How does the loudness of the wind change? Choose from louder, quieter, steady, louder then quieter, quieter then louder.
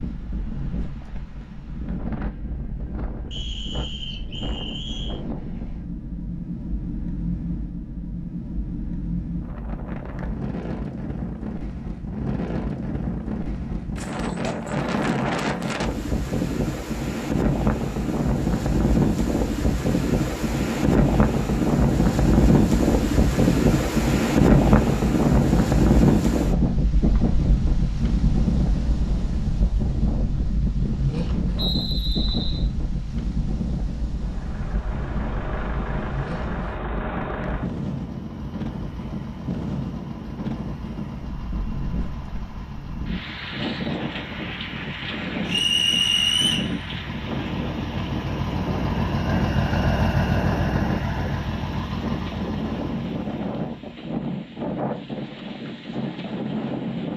louder then quieter.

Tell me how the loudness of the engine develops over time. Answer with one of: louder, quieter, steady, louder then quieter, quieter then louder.
quieter then louder.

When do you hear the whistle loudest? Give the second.
46 s.